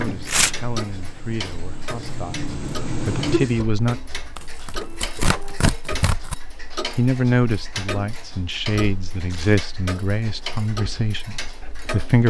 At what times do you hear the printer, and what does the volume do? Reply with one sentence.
The printer can be heard from 0.0 to 5.6 s, getting louder then quieter.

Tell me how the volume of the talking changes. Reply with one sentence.
The volume of the talking goes up.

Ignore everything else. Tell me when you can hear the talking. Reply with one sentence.
The talking can be heard from 0.0 to 4.0 s and from 7.0 to 12.2 s.